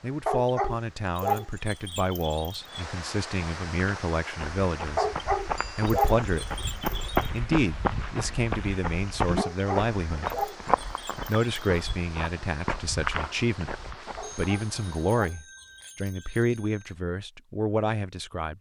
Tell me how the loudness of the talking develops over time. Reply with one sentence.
The loudness of the talking stays about the same.